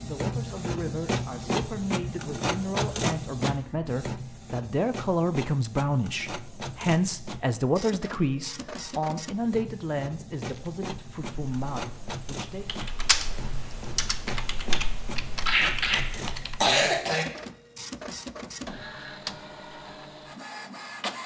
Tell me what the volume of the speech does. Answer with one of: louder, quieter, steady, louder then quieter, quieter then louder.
louder then quieter.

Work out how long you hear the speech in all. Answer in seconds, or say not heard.
13 s.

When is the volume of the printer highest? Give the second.
3 s.